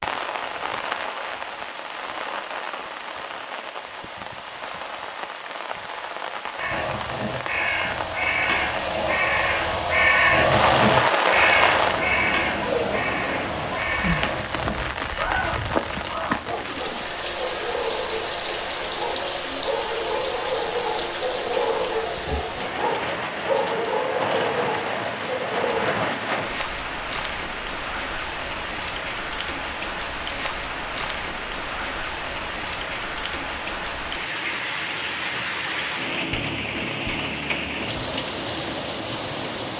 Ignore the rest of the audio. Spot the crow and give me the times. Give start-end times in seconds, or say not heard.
6.5-16.4.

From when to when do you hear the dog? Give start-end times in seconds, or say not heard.
16.4-25.9.